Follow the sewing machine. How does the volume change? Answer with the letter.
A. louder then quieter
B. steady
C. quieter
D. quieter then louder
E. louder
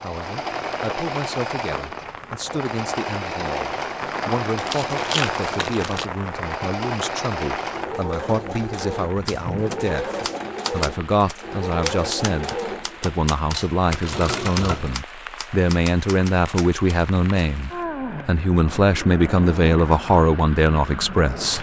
B.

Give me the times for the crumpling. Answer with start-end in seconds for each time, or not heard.
4.0-6.0.